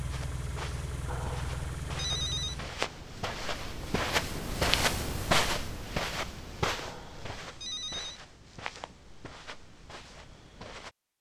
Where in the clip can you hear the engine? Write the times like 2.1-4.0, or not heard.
0.0-2.9.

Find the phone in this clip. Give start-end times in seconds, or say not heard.
1.1-2.5, 6.7-8.2.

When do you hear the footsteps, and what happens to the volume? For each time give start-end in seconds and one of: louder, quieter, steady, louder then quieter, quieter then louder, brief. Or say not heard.
0.1-10.9 louder then quieter.